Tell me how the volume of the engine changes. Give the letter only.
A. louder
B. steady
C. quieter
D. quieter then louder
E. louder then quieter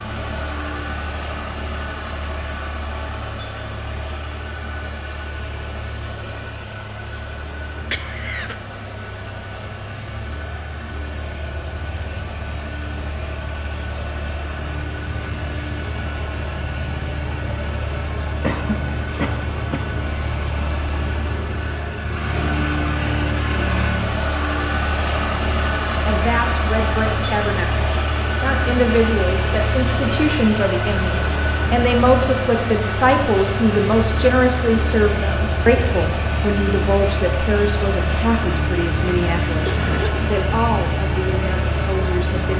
A.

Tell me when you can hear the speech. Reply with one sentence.
The speech can be heard from 26.1 to 42.5 s.